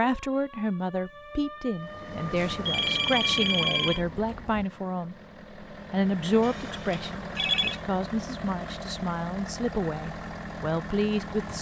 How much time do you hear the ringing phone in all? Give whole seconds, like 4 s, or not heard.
3 s.